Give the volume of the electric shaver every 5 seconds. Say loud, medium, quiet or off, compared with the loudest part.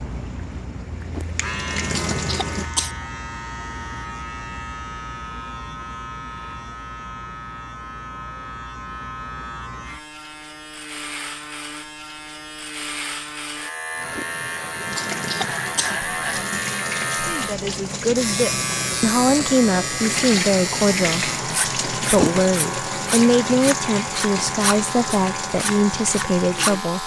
medium, medium, medium, loud, loud, loud.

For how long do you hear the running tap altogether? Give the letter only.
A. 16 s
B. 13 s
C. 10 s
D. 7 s
A.